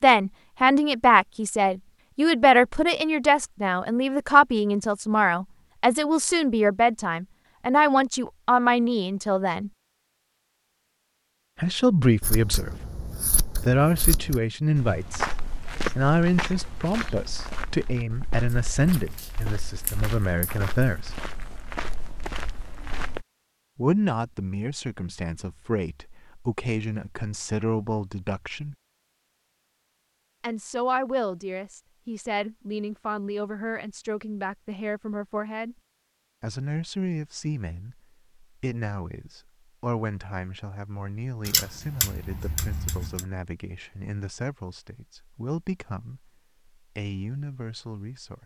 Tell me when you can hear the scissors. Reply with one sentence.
You can hear the scissors from 12.2 to 14.4 s, from 18.9 to 20.9 s and from 41.5 to 43.2 s.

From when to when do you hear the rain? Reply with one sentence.
The rain can't be heard in this clip.